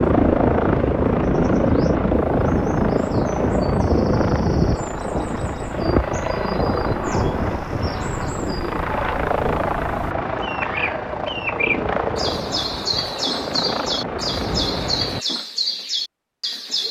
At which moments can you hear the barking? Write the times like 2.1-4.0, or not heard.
not heard.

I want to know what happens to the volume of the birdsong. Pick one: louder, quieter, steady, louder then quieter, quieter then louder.
louder.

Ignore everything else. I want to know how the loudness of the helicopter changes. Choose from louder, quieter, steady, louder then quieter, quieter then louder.
quieter.